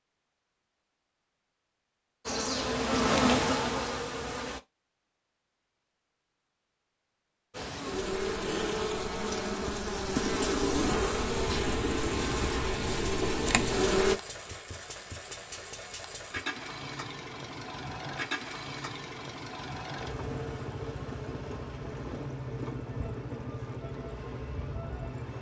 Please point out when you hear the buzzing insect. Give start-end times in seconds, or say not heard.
2.2-4.6, 7.5-14.2.